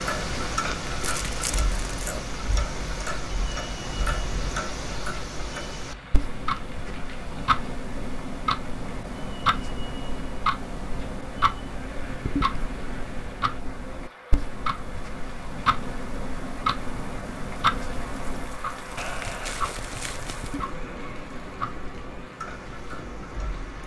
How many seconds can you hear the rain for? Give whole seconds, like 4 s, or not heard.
24 s.